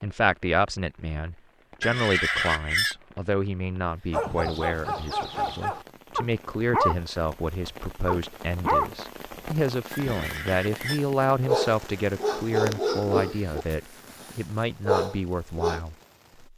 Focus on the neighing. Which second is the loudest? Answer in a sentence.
The loudest moment of the neighing is at 2 seconds.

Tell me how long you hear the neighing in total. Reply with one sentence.
The neighing can be heard for 2 seconds in total.